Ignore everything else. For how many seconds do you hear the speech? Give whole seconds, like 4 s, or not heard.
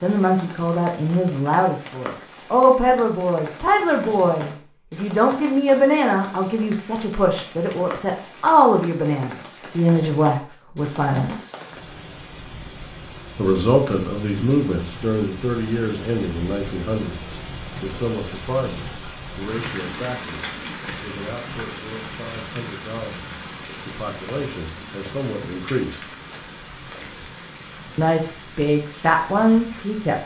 26 s.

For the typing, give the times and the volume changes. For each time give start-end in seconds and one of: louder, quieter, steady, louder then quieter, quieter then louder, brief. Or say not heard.
not heard.